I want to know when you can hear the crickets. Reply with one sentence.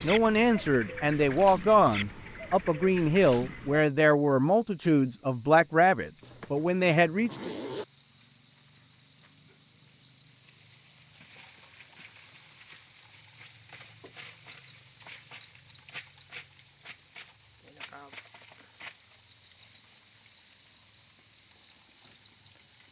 You can hear the crickets from 0.0 to 22.8 s.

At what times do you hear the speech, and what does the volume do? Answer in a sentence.
You can hear the speech from 0.0 to 7.5 s, at a steady volume.